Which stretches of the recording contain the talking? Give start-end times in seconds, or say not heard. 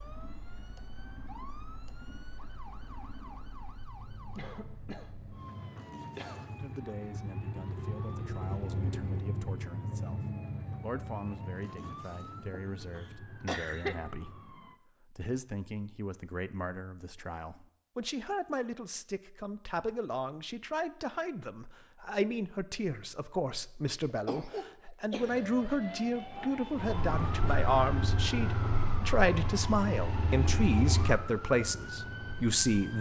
6.5-10.2, 10.8-32.9.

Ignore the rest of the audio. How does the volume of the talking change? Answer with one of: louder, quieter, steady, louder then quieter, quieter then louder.
louder.